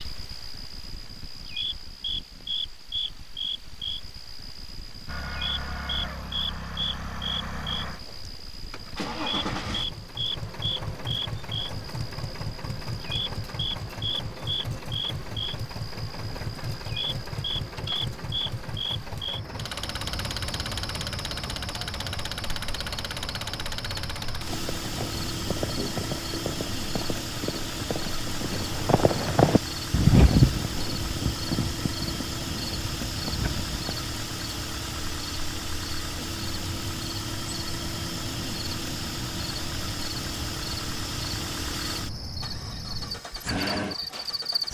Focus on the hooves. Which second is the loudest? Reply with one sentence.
The volume of the hooves peaks at 30 seconds.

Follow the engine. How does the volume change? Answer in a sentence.
The volume of the engine stays about the same.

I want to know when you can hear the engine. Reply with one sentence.
The engine can be heard from 5.0 to 44.6 s.